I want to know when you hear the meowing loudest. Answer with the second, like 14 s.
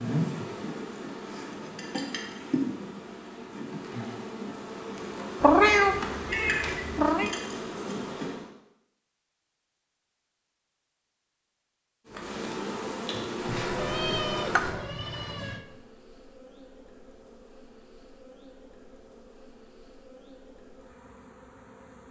6 s.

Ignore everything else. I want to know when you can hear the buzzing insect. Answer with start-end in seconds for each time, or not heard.
0.0-8.5, 12.1-22.0.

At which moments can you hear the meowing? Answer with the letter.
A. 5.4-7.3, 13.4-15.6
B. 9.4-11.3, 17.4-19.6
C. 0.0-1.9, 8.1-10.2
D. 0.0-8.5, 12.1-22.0
A.